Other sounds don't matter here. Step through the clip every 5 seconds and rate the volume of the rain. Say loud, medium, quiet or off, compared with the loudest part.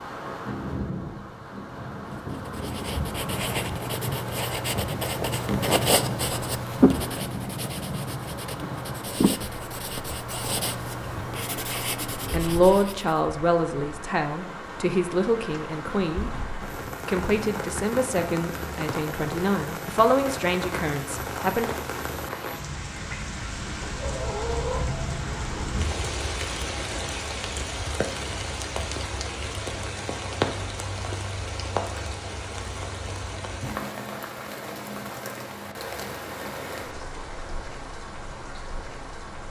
loud, loud, medium, loud, loud, loud, loud, medium.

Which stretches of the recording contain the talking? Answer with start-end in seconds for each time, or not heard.
12.3-16.4, 17.1-21.8.